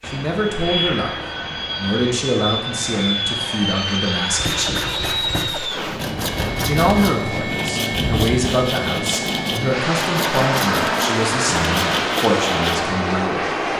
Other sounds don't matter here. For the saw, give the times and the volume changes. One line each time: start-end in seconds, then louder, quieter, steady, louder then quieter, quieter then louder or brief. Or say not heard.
4.3-12.8 steady.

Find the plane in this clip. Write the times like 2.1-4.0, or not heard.
0.0-13.7.